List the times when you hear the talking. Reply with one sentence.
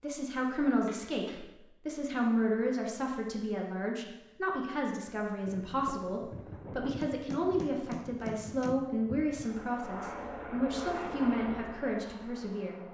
You can hear the talking from 0.0 to 12.9 s.